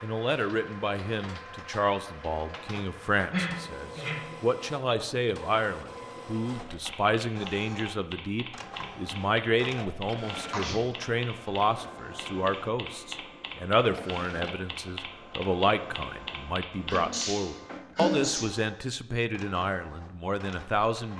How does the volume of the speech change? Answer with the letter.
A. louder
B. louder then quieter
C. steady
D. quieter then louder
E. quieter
C.